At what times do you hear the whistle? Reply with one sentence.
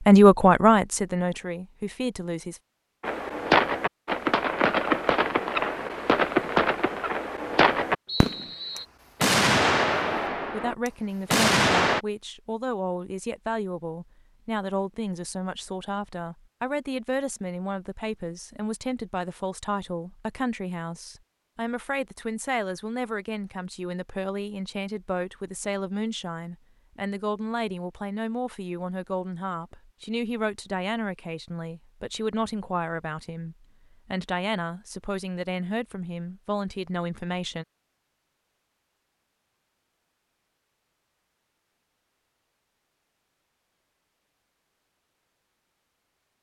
You can hear the whistle from 8.1 to 8.8 s.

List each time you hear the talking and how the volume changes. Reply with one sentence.
The talking can be heard briefly from 0.1 to 2.6 s; and from 10.3 to 37.6 s, at a steady volume.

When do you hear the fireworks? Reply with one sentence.
You can hear the fireworks from 3.0 to 12.0 s.